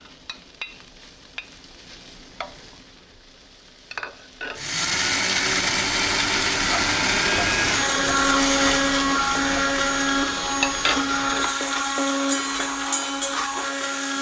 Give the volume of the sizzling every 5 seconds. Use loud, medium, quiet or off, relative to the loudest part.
medium, loud, loud.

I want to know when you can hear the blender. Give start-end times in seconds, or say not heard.
4.5-14.1.